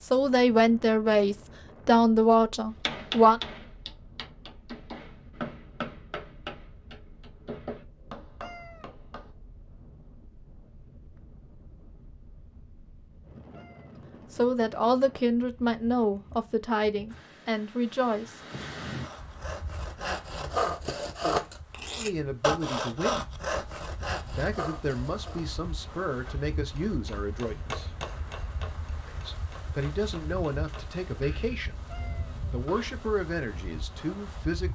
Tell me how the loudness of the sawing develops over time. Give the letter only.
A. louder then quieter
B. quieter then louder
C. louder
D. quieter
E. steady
A.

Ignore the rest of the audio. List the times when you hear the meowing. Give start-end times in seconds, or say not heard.
8.4-8.8, 13.5-14.0, 31.9-32.4.